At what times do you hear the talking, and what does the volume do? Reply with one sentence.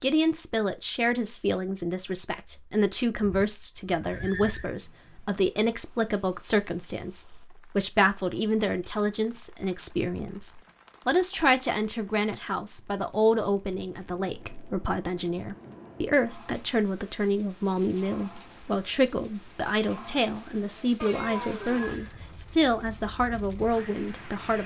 You can hear the talking from 0.0 to 24.6 s, at a steady volume.